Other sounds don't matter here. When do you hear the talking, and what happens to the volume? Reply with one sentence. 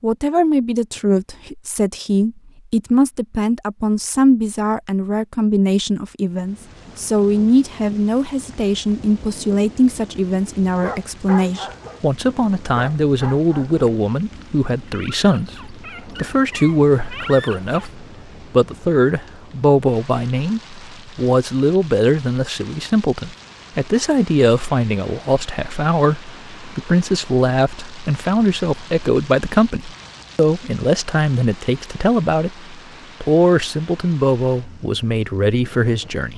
You can hear the talking from 0.0 to 36.3 s, at a steady volume.